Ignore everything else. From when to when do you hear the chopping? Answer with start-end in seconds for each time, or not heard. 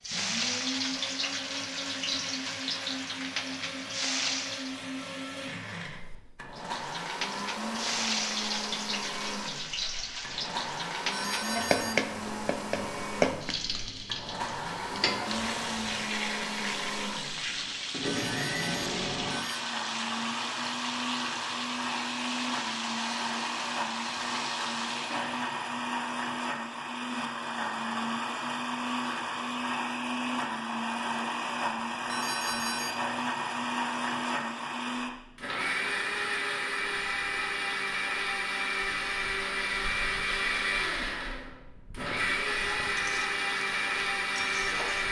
not heard.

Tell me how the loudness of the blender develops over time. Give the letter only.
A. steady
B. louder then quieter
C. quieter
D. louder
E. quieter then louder
D.